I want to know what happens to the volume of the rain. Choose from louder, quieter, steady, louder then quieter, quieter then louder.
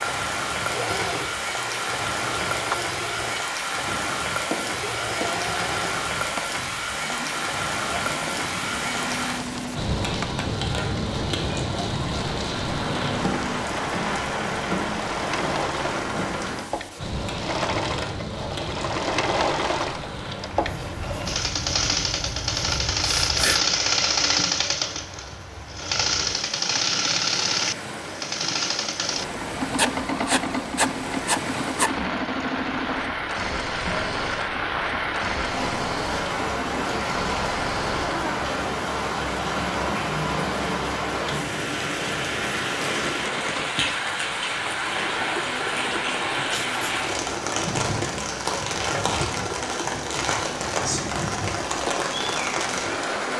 quieter then louder.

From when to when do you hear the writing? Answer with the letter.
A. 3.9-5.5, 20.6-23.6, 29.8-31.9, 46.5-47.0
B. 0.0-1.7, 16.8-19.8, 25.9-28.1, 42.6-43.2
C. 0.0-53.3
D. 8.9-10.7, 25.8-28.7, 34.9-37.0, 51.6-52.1
A.